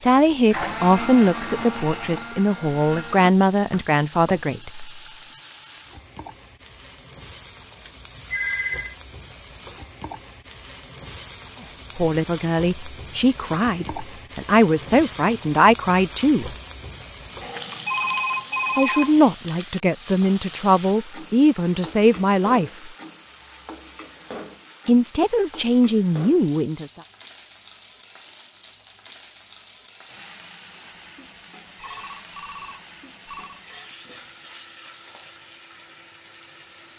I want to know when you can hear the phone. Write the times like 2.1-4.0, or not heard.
7.8-8.9, 17.9-19.2, 31.8-33.6.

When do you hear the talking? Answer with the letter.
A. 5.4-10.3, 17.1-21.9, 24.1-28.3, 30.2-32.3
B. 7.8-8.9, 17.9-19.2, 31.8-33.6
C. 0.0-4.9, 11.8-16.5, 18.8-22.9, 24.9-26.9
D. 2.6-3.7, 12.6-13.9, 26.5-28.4
C.